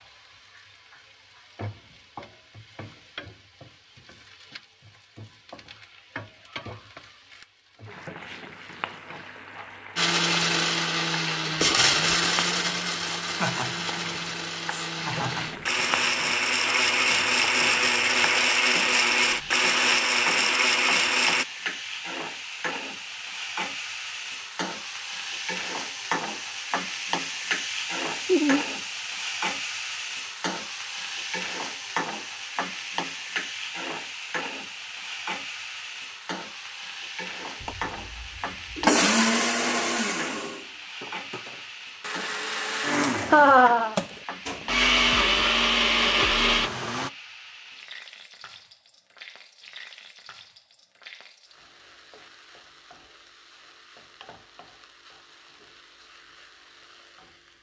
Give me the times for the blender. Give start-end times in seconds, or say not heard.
9.9-21.4, 37.6-47.1.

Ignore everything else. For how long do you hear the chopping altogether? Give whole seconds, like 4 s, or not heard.
not heard.